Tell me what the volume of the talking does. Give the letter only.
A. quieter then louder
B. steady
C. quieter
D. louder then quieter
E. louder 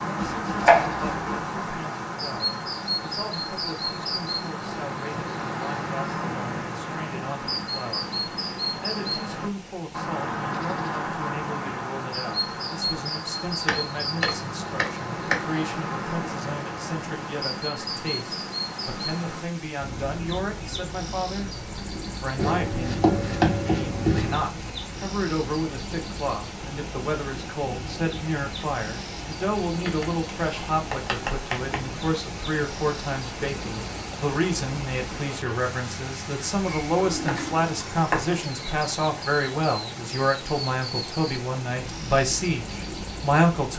E.